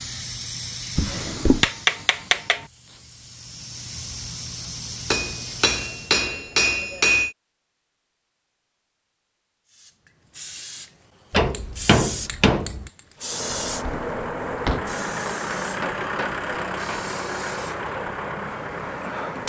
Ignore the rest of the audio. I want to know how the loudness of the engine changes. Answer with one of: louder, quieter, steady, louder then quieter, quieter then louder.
steady.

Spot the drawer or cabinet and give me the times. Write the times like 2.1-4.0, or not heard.
0.9-1.6, 13.5-15.0.